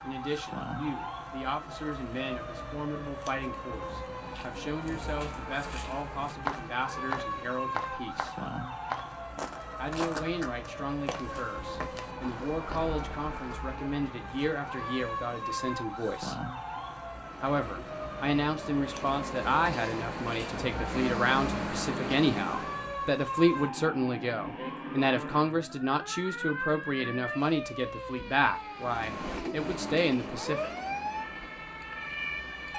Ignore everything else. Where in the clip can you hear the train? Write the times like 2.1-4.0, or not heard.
17.1-22.9, 28.8-32.7.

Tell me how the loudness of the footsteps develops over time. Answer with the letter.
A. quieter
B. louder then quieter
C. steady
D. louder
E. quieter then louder
B.